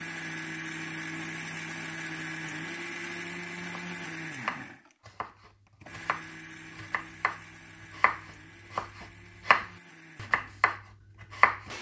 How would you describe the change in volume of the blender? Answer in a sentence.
The loudness of the blender goes down.